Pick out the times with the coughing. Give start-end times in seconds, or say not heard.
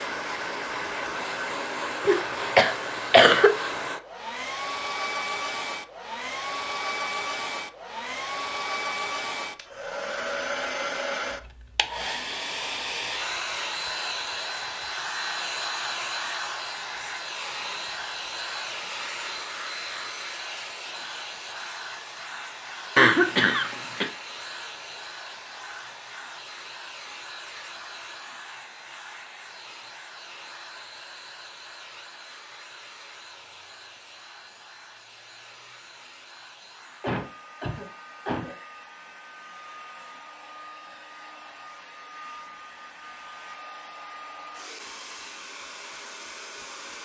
2.0-3.5, 22.9-24.1, 37.0-38.5.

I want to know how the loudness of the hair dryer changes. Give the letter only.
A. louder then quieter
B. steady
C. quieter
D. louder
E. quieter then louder
C.